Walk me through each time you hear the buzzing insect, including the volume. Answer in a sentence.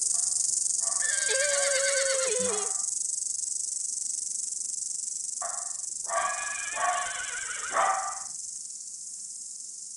The buzzing insect can be heard from 0.0 to 9.9 s, getting quieter.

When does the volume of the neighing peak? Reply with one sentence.
The loudest moment of the neighing is at 2 seconds.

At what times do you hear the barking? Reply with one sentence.
You can hear the barking from 0.1 to 2.9 s and from 5.4 to 8.2 s.